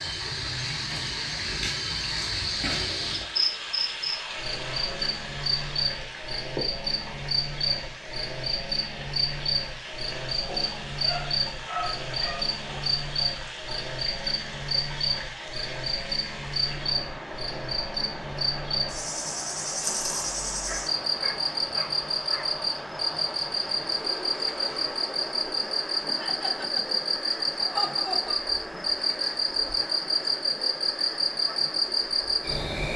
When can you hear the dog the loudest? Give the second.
12 s.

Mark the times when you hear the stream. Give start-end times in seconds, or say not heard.
0.0-32.9.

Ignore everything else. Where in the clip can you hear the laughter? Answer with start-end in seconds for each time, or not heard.
26.1-28.4.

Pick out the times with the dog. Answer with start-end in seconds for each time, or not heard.
10.4-13.0, 20.6-22.4.